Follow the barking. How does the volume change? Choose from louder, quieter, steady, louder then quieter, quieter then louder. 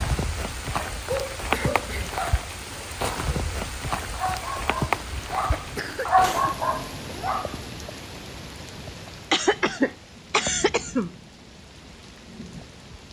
quieter then louder.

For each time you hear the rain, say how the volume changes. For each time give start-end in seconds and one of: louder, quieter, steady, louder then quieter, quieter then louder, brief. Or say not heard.
0.0-13.0 quieter.